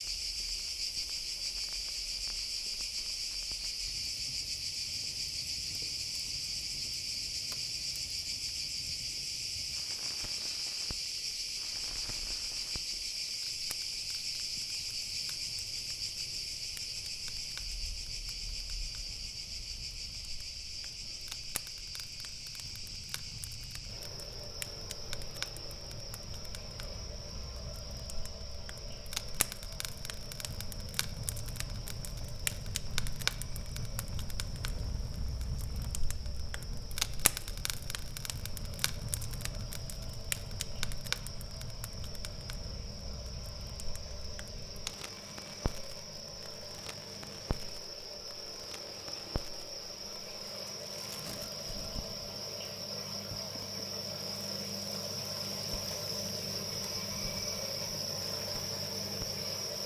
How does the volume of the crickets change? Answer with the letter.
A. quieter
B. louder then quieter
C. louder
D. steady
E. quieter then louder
E.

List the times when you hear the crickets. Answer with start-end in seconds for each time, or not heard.
0.0-59.8.